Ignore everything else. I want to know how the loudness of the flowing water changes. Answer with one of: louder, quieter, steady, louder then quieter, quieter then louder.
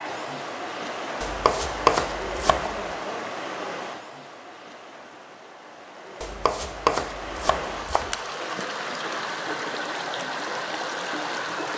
quieter then louder.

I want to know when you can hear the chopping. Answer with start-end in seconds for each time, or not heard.
1.2-2.8, 6.2-8.2.